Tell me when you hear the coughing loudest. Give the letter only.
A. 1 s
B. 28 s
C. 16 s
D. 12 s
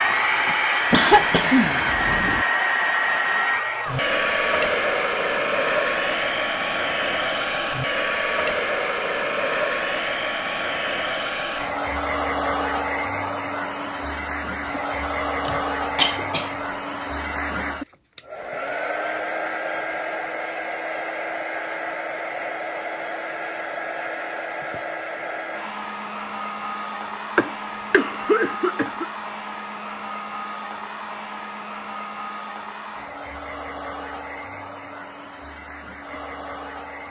A.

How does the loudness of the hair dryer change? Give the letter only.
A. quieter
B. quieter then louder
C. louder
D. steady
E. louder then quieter
A.